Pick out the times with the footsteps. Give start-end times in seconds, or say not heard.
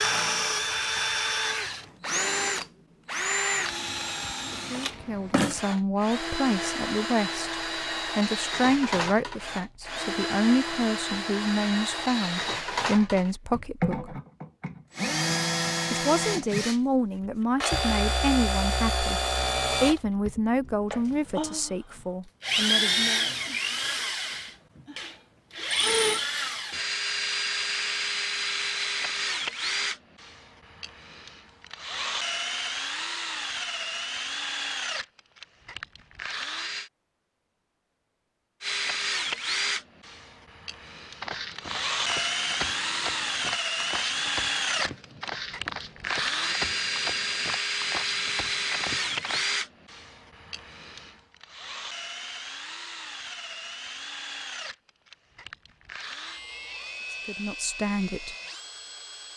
41.2-49.5.